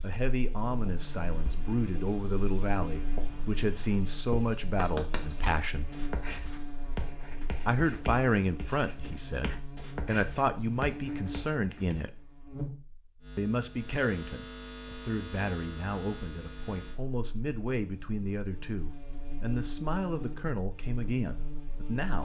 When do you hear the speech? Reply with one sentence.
You can hear the speech from 0.0 to 5.9 s, from 7.7 to 12.1 s and from 13.3 to 22.2 s.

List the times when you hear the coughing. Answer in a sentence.
You can't hear the coughing here.